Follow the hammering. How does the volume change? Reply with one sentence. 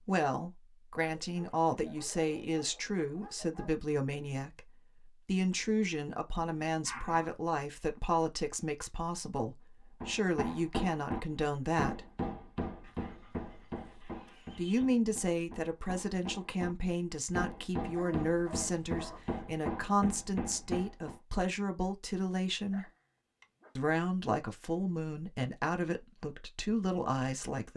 The loudness of the hammering goes down, then up.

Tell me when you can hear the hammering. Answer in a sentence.
The hammering can be heard from 10.0 to 21.2 s.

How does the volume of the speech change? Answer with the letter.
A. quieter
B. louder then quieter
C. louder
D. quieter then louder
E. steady
E.